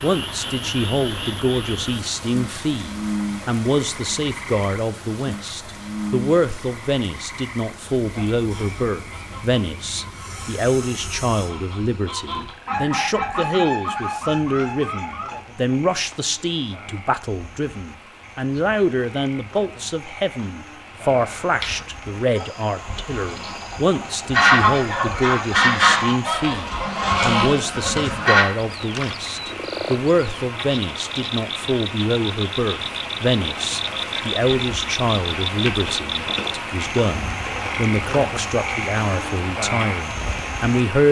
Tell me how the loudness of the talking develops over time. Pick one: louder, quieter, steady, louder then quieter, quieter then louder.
steady.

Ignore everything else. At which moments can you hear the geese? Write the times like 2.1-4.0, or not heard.
8.1-15.3, 21.1-28.4.